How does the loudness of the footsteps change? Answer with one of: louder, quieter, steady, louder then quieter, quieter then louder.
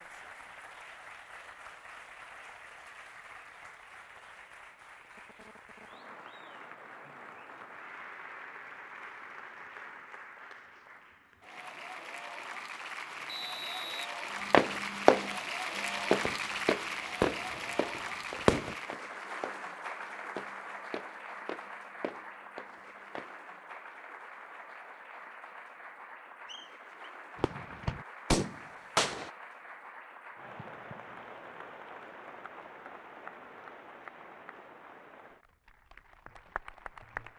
quieter.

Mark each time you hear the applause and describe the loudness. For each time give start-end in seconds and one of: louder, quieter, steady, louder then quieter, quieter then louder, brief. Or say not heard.
0.0-37.3 louder then quieter.